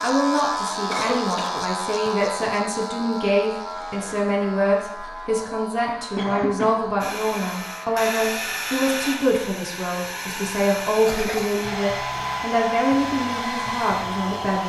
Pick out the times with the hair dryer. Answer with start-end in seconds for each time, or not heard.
7.0-14.6.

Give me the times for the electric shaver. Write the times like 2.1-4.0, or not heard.
0.0-8.1.